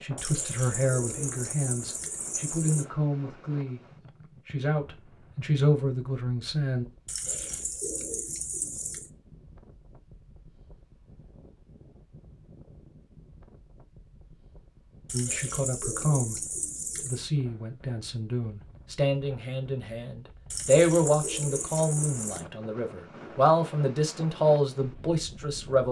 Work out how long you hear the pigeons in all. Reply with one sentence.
You can hear the pigeons for 9 seconds altogether.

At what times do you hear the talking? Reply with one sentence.
The talking can be heard from 0.0 to 3.8 s, from 4.5 to 6.8 s, from 15.1 to 16.4 s and from 17.1 to 25.8 s.